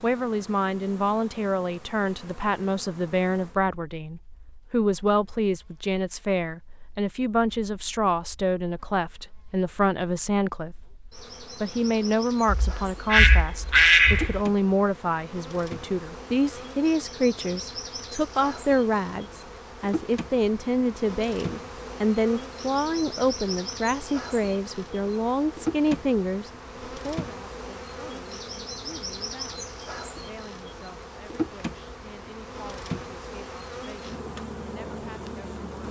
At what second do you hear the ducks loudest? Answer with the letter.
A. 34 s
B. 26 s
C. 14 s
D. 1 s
C.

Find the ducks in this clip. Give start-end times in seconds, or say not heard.
12.4-14.4.